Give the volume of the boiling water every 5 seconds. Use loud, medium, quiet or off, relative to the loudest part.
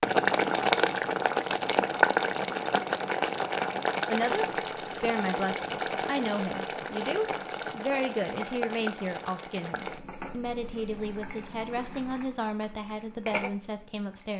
loud, medium, quiet.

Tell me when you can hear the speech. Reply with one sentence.
The speech can be heard from 4.1 to 14.3 s.